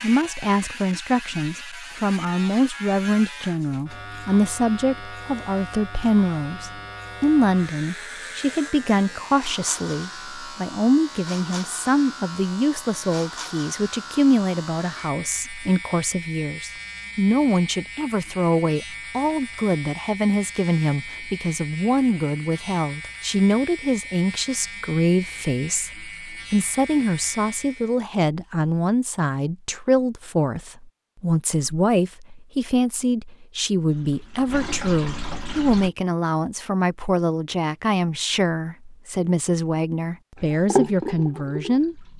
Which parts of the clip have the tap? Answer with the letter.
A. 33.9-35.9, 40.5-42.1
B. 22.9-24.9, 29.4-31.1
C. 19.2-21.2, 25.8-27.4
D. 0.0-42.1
A.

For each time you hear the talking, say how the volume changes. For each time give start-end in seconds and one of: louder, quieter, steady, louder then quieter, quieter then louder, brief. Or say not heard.
0.0-42.1 steady.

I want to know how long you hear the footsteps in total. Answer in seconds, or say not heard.
not heard.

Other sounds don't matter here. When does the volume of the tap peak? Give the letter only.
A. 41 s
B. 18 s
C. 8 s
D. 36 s
A.